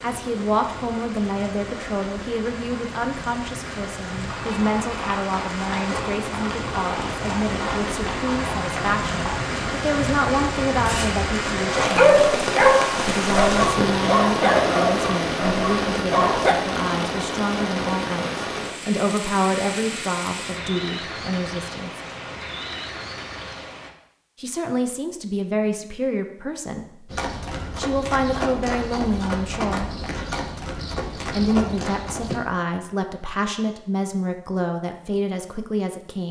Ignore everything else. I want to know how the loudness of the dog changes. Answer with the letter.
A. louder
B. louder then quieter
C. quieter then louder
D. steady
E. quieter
E.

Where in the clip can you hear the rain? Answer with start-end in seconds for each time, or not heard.
0.0-23.9.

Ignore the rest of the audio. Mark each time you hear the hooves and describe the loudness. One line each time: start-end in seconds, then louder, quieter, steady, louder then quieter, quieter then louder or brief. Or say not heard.
4.2-9.5 steady
27.1-32.4 steady.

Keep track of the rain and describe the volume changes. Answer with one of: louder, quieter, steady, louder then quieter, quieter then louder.
louder then quieter.